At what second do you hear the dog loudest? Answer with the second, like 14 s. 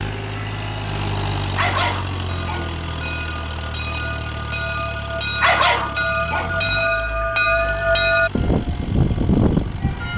6 s.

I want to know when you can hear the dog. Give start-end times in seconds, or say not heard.
1.6-2.8, 5.4-6.7.